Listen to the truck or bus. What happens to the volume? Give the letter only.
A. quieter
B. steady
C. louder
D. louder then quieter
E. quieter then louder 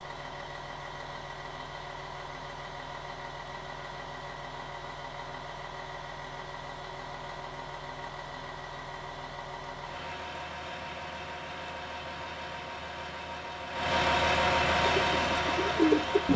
C.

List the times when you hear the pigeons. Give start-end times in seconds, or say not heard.
14.9-16.3.